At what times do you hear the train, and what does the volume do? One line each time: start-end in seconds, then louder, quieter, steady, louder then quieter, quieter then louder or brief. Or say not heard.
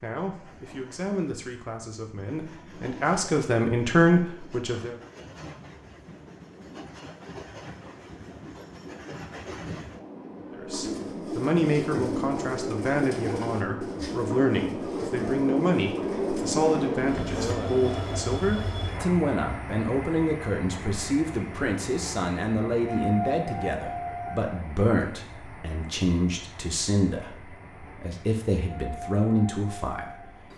0.2-30.5 louder then quieter.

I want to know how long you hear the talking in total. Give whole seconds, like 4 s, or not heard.
25 s.